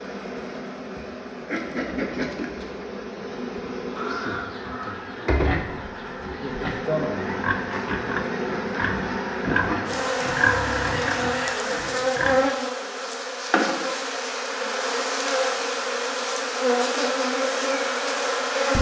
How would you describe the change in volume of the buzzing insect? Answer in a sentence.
The volume of the buzzing insect goes up.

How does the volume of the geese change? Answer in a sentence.
The volume of the geese goes up.